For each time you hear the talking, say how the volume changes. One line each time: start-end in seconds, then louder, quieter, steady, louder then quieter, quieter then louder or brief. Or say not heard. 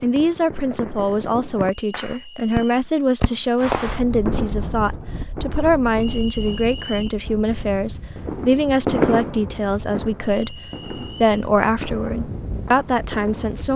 0.0-13.7 steady.